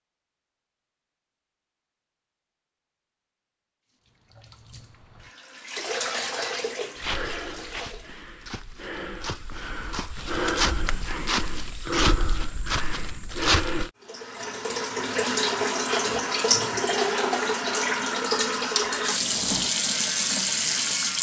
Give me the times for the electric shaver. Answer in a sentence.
The electric shaver can be heard from 19.1 to 21.1 s.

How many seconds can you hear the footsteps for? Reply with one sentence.
The footsteps can be heard for 7 seconds in total.